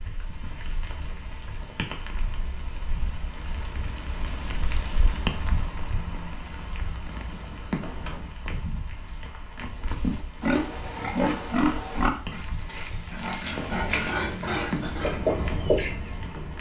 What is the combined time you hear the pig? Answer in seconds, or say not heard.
6 s.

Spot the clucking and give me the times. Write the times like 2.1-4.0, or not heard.
13.5-16.5.